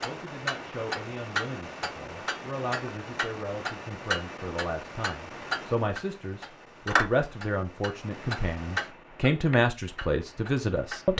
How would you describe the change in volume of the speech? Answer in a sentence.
The loudness of the speech goes up.